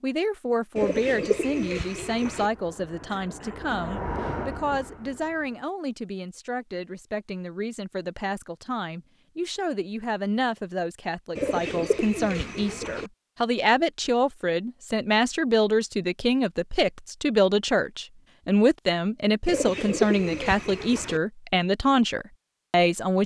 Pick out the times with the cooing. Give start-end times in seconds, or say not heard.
0.8-2.5, 11.3-13.1, 19.4-21.2.